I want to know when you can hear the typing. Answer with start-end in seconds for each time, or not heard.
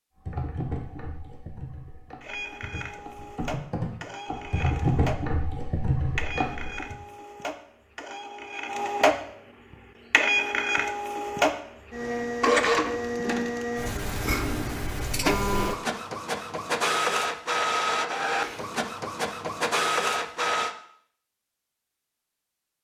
0.2-7.0.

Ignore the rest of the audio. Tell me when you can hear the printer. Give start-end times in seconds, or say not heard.
2.2-20.8.